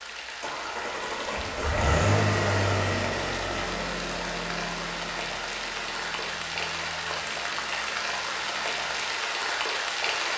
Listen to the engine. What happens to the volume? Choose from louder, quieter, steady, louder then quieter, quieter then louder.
quieter.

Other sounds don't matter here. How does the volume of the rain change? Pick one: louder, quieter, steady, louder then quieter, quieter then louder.
louder.